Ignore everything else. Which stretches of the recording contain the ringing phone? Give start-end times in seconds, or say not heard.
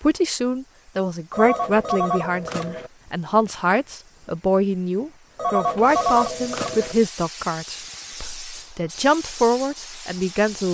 1.3-2.9, 5.3-7.0.